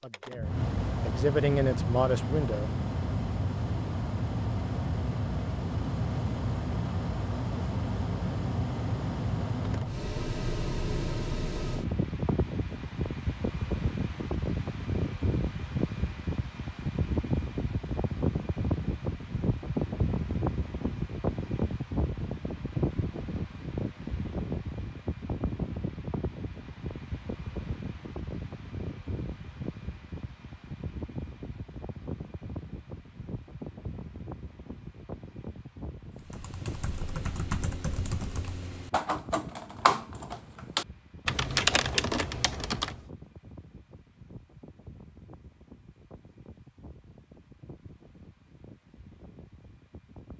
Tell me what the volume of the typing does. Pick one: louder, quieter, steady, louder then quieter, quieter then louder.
louder.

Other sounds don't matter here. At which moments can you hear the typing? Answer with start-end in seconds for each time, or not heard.
36.1-43.0.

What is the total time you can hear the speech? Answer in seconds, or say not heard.
3 s.